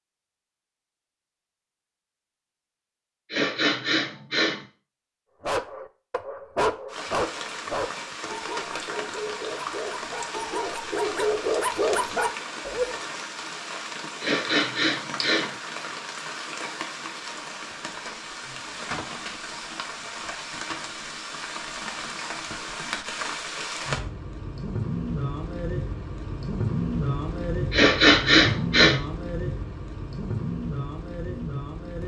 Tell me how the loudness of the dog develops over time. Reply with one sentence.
The loudness of the dog goes down, then up.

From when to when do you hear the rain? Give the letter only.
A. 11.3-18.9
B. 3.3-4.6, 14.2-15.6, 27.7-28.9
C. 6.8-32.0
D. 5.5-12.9
C.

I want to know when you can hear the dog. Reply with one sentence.
The dog can be heard from 5.5 to 12.9 s.